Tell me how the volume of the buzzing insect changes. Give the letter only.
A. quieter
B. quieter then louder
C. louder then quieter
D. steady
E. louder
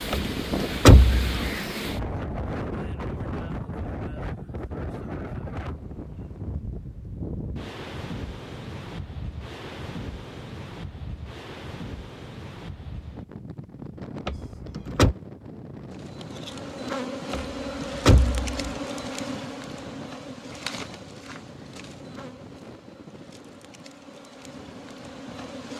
A.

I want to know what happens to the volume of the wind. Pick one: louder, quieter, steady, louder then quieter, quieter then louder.
quieter.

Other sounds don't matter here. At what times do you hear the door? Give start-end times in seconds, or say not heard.
0.1-1.3, 14.2-15.2, 17.3-18.7.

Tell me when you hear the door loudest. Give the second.
1 s.